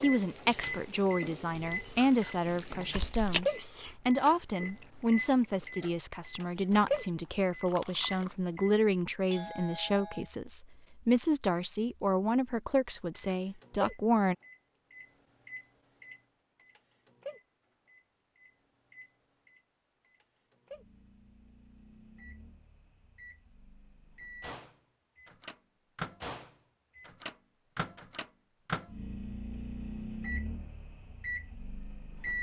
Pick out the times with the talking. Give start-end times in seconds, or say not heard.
0.0-14.3.